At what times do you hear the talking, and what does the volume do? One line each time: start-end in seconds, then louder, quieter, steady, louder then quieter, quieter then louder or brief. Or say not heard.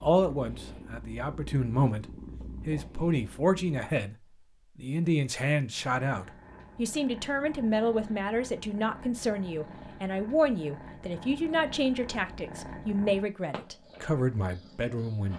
0.0-15.3 steady.